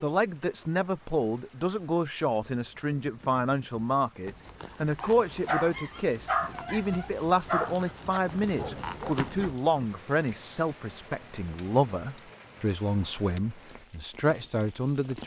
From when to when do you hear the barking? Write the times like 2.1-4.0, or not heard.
5.0-9.2.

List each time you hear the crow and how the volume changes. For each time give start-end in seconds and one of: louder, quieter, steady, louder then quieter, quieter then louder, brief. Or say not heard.
not heard.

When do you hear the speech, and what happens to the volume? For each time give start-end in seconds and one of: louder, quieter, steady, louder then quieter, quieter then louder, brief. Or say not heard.
0.0-15.2 steady.